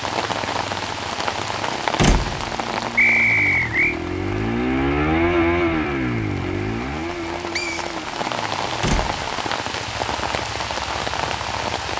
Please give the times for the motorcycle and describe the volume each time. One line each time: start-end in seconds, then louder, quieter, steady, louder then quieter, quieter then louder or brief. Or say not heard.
0.0-11.9 louder then quieter.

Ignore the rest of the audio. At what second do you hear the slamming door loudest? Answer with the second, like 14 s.
2 s.